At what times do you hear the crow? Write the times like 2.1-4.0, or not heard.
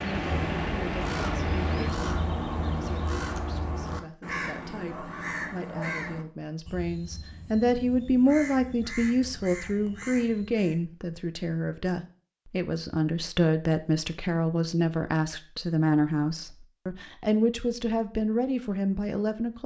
0.0-10.8.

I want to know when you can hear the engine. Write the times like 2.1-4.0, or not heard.
0.0-1.9.